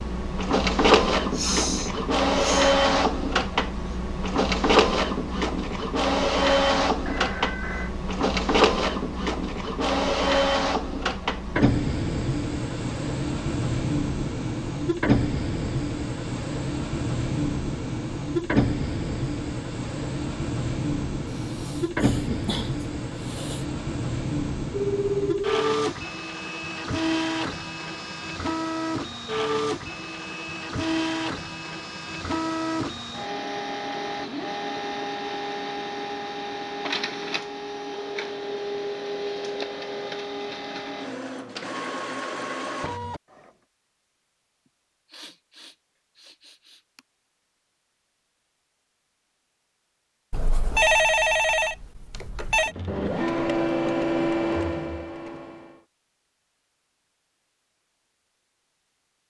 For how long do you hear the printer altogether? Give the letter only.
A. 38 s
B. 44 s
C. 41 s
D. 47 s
D.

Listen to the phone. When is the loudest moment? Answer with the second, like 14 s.
51 s.